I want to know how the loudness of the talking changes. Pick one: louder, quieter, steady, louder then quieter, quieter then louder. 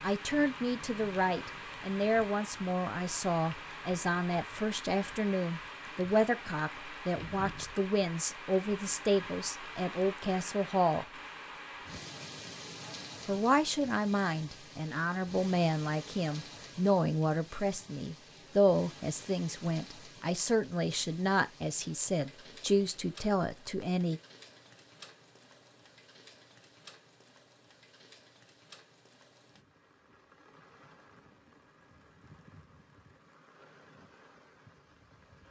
steady.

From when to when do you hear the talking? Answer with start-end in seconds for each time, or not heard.
0.0-11.1, 13.2-24.2.